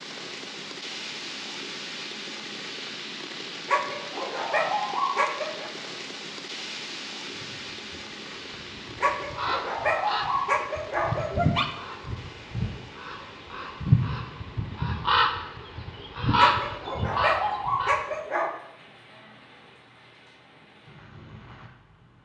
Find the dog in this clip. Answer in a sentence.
You can hear the dog from 3.6 to 5.7 s, from 9.0 to 11.7 s and from 16.4 to 18.6 s.